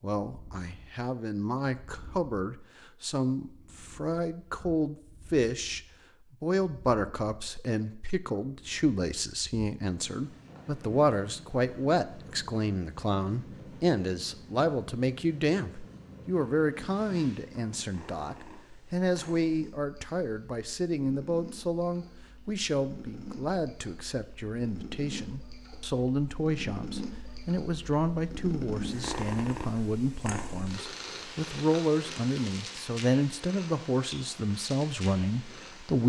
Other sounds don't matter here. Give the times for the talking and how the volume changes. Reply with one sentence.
The talking can be heard from 0.0 to 5.8 s, getting louder; and from 6.4 to 36.0 s, at a steady volume.